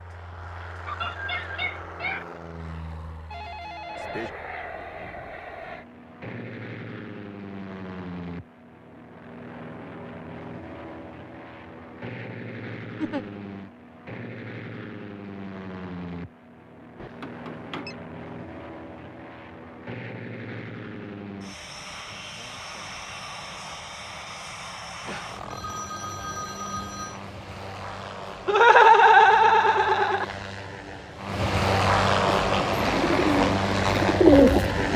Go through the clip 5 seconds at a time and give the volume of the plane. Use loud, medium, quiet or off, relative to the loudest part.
quiet, quiet, quiet, quiet, quiet, quiet, loud.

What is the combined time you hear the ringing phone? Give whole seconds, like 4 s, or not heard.
4 s.